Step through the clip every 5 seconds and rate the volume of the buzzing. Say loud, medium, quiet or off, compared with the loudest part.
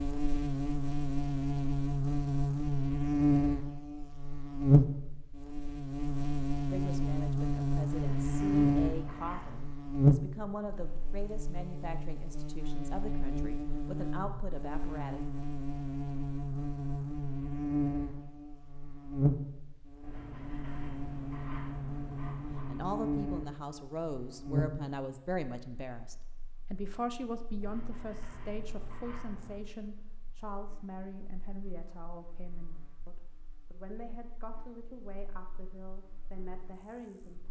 loud, loud, loud, medium, medium, quiet, quiet, quiet.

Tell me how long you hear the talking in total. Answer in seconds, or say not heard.
24 s.